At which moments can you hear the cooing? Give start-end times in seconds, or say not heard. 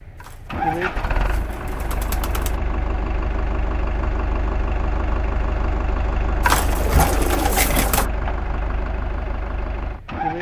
0.2-2.6, 6.4-8.1.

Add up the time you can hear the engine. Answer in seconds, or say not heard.
10 s.